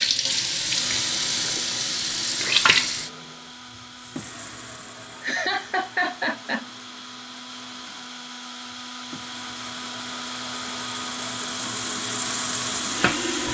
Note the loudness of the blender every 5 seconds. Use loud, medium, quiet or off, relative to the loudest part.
medium, medium, loud.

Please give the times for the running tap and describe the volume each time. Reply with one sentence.
You can hear the running tap from 0.0 to 13.4 s, getting quieter then louder.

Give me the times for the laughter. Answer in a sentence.
You can hear the laughter from 5.2 to 6.7 s.